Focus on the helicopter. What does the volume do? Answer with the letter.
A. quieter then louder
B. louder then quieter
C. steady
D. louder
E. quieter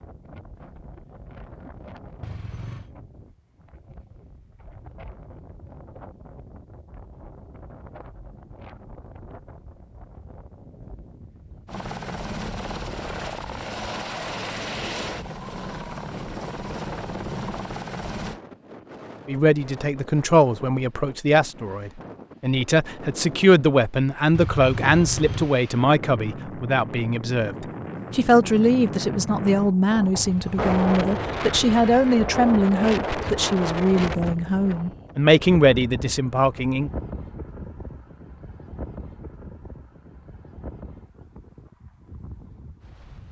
C.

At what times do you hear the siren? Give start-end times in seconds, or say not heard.
not heard.